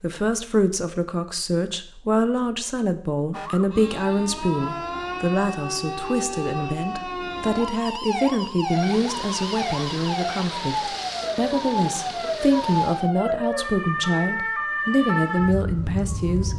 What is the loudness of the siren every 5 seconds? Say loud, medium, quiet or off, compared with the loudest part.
medium, loud, loud, loud.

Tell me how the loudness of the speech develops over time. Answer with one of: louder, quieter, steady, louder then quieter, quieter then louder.
steady.